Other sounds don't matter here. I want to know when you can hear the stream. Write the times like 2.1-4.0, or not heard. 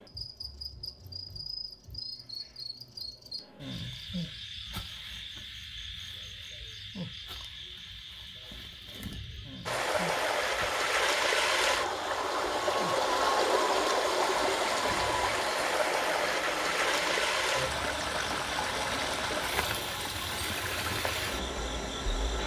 9.7-22.4.